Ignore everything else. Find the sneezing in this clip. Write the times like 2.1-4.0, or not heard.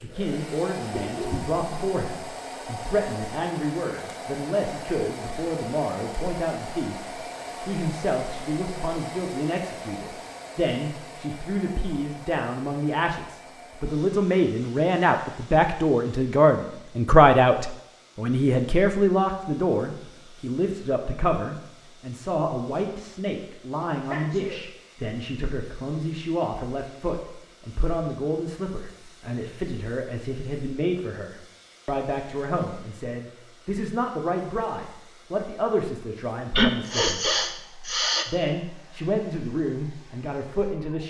0.9-1.6, 24.1-24.6, 36.5-38.2.